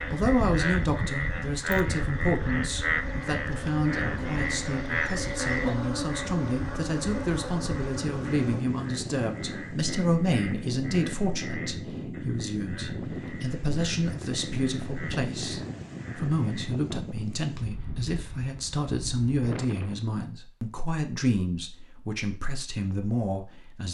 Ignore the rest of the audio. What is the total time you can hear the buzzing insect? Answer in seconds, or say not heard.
9 s.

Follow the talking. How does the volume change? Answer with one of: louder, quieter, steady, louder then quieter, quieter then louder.
steady.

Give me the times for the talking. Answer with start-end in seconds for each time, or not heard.
0.0-23.8.